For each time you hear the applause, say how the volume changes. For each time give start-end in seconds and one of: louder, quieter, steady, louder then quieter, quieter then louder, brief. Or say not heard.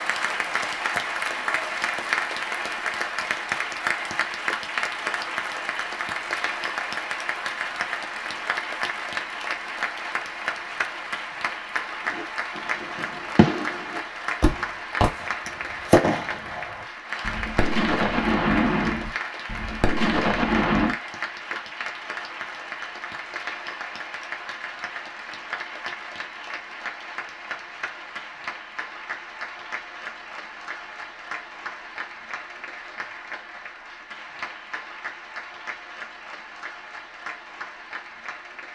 0.0-38.6 quieter.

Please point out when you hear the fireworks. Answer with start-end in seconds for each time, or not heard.
12.1-20.9.